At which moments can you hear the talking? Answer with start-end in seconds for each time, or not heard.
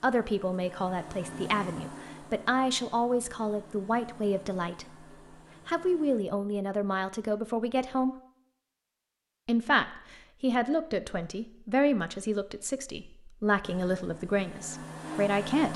0.0-5.0, 5.7-8.2, 9.4-15.7.